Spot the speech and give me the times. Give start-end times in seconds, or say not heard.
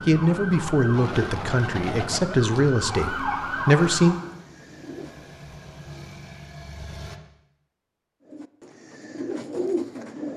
0.1-4.2.